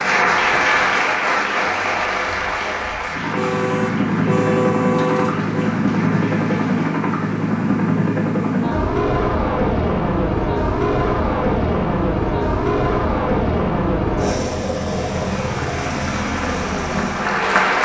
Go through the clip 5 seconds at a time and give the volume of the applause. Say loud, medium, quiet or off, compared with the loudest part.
loud, quiet, off, loud.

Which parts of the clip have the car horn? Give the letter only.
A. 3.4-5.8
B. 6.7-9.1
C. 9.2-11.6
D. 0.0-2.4
A.